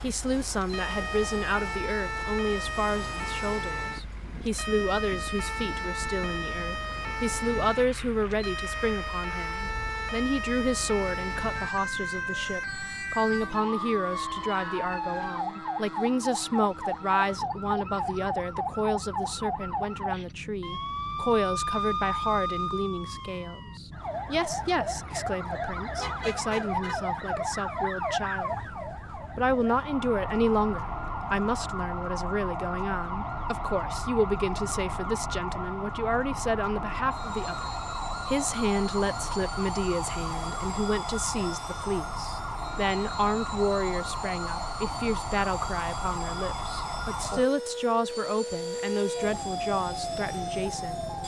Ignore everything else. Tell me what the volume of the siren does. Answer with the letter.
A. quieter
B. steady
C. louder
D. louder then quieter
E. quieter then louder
B.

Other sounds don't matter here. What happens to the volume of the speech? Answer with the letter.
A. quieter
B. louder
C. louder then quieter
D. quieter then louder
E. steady
E.